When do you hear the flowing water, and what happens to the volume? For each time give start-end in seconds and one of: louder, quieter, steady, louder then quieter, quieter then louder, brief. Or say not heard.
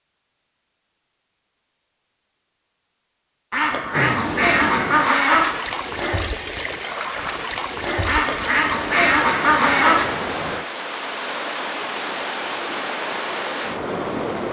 3.9-14.4 steady.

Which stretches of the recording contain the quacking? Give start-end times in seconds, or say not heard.
3.5-5.5, 8.1-10.1.